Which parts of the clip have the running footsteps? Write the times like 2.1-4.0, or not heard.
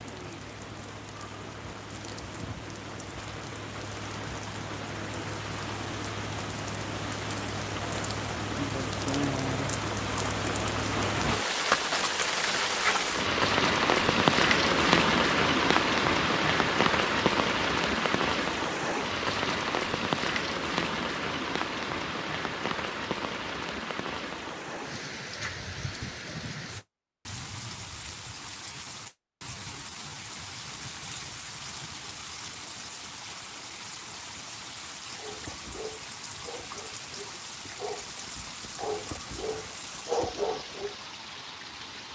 not heard.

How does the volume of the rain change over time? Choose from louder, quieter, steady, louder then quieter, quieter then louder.
louder then quieter.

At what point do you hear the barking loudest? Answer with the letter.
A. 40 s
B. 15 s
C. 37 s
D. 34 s
A.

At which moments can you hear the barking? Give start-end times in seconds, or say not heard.
35.1-41.0.